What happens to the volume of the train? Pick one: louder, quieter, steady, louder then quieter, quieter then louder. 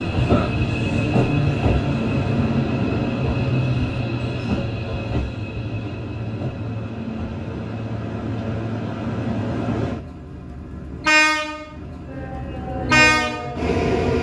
quieter then louder.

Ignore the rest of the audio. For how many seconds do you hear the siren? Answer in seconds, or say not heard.
2 s.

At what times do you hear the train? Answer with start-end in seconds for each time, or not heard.
0.0-14.1.